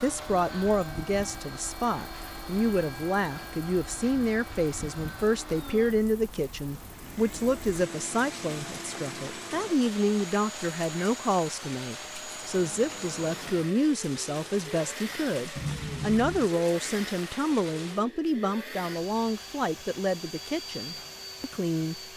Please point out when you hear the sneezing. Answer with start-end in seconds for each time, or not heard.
15.6-16.5.